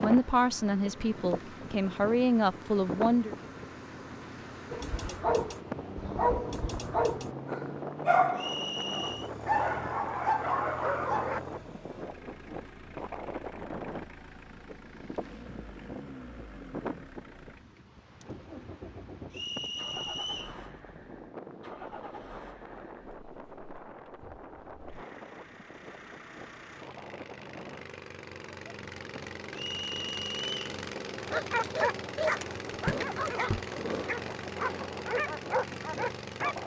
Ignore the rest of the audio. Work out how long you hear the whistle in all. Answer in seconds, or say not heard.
3 s.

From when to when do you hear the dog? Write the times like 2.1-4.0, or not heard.
4.7-11.4, 31.2-36.6.